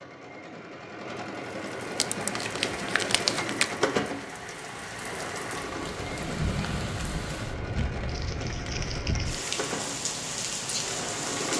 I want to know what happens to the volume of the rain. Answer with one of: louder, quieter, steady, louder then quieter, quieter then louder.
louder.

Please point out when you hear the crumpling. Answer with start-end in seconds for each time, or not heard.
1.9-3.8, 8.1-9.4.